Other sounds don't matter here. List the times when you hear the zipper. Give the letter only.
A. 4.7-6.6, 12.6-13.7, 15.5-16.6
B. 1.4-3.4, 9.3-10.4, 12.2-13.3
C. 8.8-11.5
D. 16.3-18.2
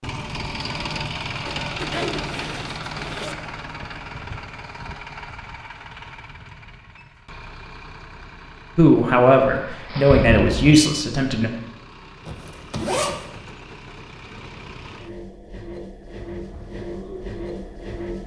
B.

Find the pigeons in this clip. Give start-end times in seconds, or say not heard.
16.3-18.2.